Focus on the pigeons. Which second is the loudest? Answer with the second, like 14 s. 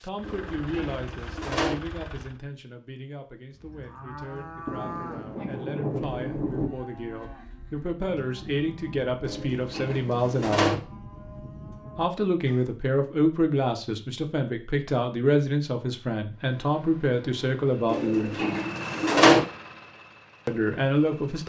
19 s.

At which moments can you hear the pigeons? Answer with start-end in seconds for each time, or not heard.
0.2-1.8, 9.2-10.8, 17.9-19.4.